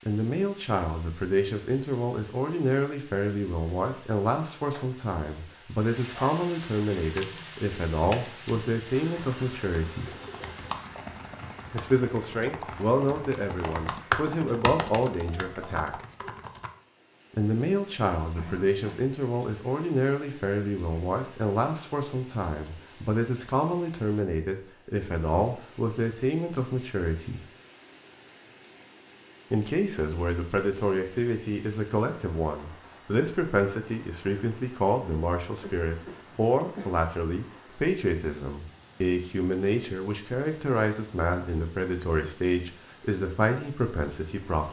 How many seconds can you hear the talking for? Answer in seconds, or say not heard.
40 s.